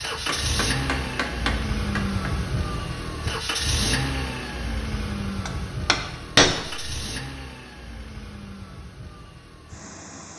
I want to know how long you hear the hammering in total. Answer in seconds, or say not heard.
4 s.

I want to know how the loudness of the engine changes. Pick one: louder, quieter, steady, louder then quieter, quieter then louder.
quieter.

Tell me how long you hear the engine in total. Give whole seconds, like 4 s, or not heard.
10 s.